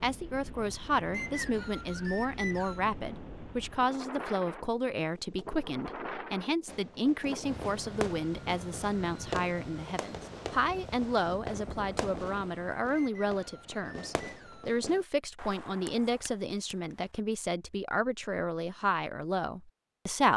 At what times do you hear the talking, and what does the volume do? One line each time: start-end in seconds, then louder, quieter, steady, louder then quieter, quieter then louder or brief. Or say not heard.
0.0-20.3 steady.